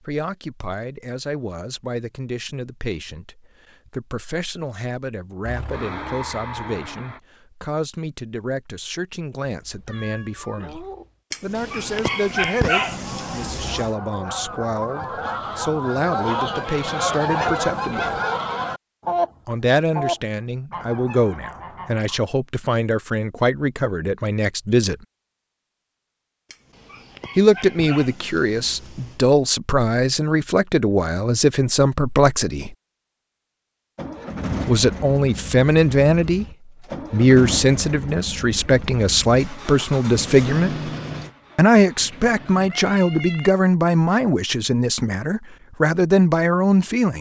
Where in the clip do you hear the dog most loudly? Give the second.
13 s.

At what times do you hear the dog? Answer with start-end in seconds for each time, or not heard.
11.3-13.9, 26.5-29.2.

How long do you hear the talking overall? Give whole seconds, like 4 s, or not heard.
40 s.